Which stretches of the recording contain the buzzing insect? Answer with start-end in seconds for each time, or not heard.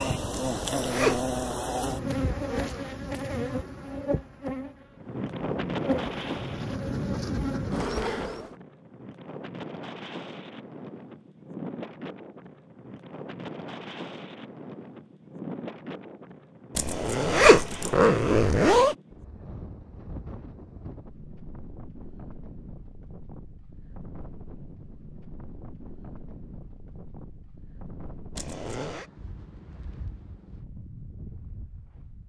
0.0-8.5.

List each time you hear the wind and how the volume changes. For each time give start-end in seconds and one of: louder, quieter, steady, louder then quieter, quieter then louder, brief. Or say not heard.
5.0-32.2 quieter.